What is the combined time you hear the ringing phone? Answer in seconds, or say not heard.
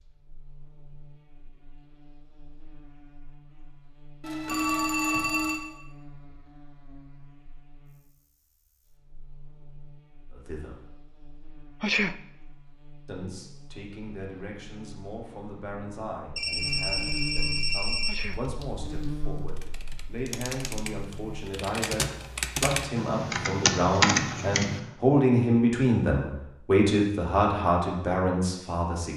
3 s.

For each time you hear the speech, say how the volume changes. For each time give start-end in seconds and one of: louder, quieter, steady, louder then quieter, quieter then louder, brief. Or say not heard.
10.3-10.8 brief
13.1-29.1 louder.